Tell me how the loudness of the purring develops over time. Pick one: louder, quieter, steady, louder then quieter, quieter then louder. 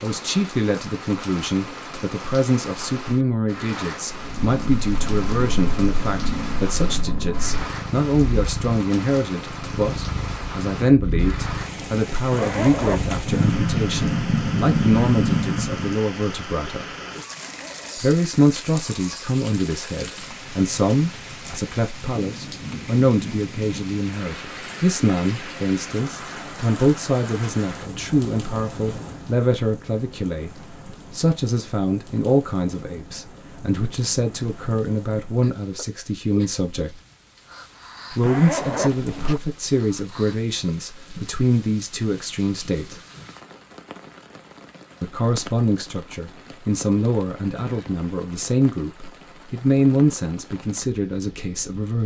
louder.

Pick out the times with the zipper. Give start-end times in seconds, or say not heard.
12.3-13.2, 17.4-18.1, 38.2-39.4.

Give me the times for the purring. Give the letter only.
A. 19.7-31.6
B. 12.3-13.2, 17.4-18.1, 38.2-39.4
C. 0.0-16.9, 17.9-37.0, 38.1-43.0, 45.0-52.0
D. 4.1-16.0
D.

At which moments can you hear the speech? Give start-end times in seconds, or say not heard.
0.0-16.9, 17.9-37.0, 38.1-43.0, 45.0-52.0.